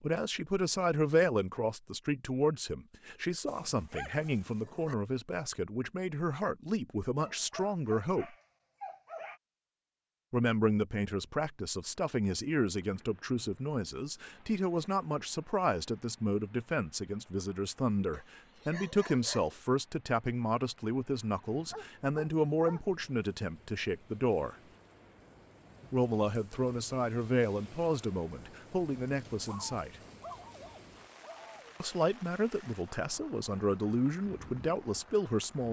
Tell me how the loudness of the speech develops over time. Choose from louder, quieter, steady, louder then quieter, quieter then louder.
steady.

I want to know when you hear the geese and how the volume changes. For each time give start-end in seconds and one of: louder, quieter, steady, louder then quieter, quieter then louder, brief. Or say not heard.
not heard.